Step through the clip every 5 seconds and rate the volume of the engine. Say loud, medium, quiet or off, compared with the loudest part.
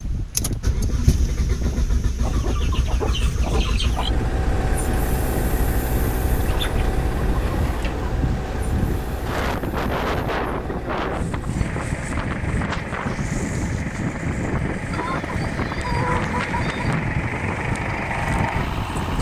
loud, loud, medium, loud.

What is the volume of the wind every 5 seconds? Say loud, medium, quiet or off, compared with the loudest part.
medium, loud, loud, loud.